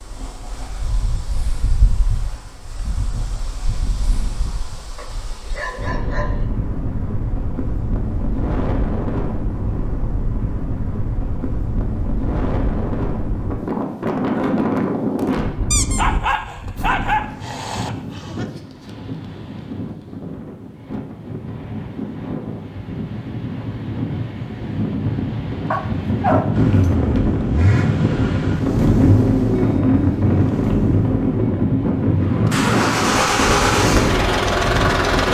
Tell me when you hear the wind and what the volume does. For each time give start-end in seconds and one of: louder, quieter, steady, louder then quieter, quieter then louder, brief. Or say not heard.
0.0-35.2 louder.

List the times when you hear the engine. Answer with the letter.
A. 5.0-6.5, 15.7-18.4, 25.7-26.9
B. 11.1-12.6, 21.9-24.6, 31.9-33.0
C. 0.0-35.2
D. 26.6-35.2
D.